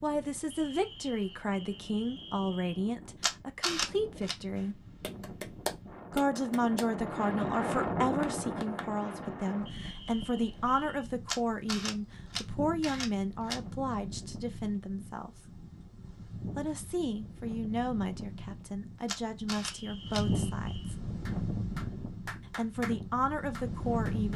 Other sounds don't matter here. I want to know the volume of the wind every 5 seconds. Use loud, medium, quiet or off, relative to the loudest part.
quiet, loud, medium, medium, loud.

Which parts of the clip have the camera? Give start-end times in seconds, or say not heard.
3.2-4.3, 11.2-13.6, 19.1-20.2.